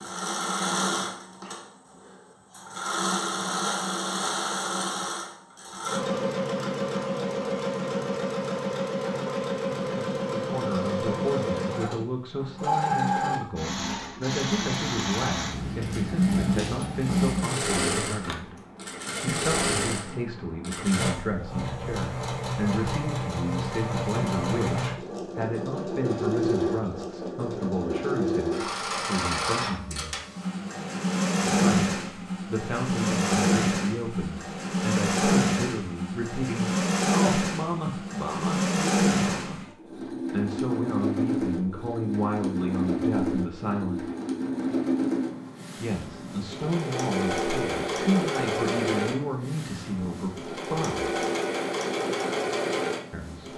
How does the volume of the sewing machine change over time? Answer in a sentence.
The loudness of the sewing machine stays about the same.